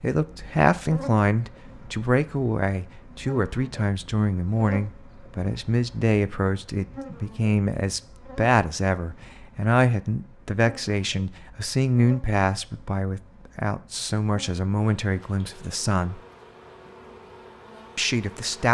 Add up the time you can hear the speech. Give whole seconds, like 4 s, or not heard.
17 s.